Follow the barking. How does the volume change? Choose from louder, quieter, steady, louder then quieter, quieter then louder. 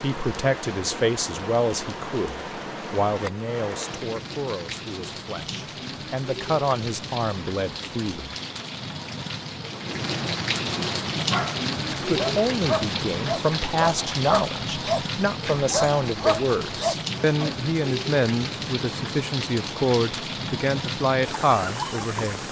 steady.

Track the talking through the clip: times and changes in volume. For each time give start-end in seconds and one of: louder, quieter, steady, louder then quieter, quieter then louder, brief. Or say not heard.
0.0-8.3 quieter then louder
11.9-22.4 steady.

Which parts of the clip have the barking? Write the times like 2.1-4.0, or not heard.
11.3-17.6.